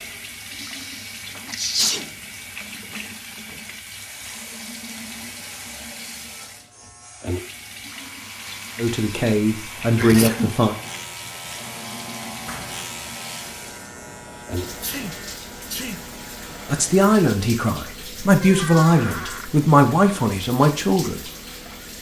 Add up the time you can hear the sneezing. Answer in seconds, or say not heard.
3 s.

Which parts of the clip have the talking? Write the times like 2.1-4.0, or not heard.
8.8-10.8, 16.6-21.2.